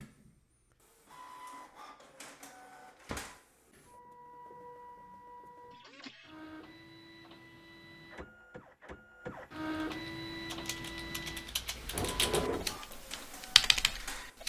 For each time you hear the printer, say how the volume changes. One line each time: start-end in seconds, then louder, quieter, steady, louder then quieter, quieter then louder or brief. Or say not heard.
0.0-14.4 louder then quieter.